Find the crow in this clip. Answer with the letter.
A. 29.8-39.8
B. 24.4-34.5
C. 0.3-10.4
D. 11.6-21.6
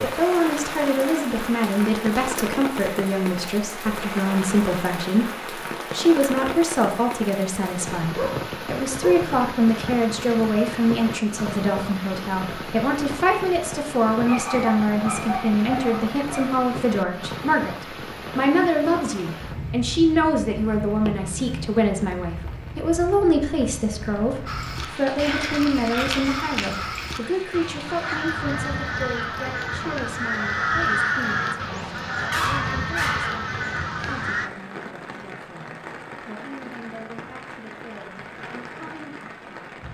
B.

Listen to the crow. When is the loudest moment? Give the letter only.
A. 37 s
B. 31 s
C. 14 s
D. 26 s
B.